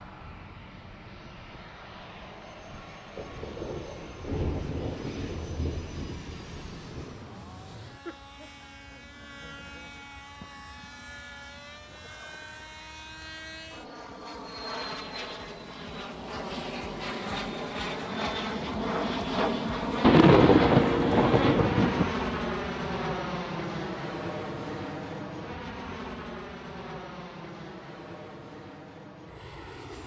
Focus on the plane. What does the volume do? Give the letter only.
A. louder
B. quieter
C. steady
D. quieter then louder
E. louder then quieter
E.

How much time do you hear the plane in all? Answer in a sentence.
You can hear the plane for 30 seconds altogether.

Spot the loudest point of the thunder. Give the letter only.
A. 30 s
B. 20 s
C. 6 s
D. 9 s
B.